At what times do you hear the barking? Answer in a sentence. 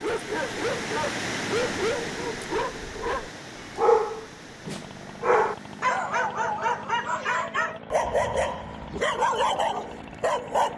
You can hear the barking from 0.0 to 10.7 s.